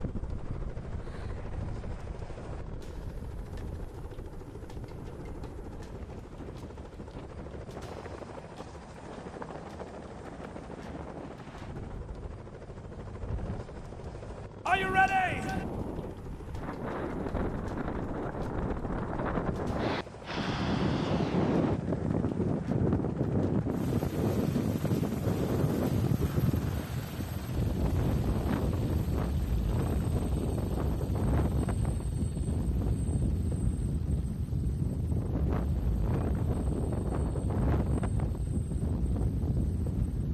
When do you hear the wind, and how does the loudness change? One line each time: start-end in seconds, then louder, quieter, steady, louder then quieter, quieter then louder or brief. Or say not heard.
0.0-40.3 louder.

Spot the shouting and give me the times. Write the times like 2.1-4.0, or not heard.
14.7-15.7.